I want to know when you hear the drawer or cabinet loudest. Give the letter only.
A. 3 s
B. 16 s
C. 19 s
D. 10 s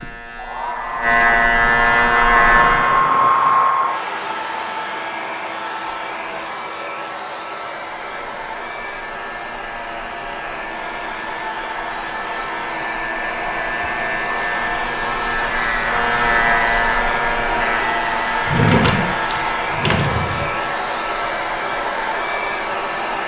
C.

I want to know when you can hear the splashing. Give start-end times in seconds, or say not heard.
not heard.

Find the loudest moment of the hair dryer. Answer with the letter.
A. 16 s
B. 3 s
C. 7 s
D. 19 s
B.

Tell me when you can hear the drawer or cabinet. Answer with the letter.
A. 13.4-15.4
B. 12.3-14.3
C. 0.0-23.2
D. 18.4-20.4
D.